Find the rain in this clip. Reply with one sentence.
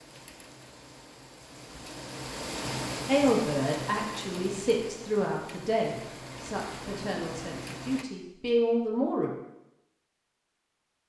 You can hear the rain from 0.0 to 8.1 s.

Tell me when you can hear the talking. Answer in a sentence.
The talking can be heard from 3.0 to 9.3 s.